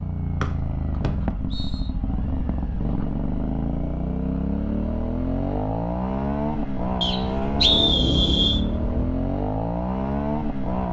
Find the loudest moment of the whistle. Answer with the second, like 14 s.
8 s.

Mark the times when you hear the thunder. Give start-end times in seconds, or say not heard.
7.5-9.1.